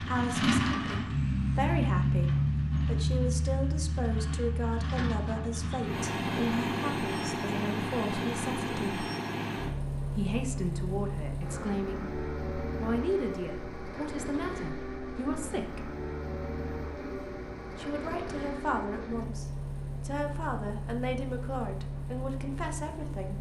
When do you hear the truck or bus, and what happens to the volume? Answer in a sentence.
The truck or bus can be heard from 0.0 to 23.3 s, getting quieter.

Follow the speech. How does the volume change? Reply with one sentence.
The loudness of the speech stays about the same.